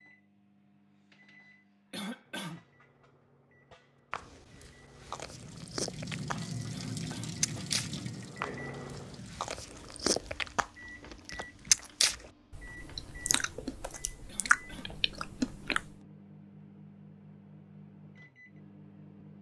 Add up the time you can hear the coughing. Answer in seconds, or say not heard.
2 s.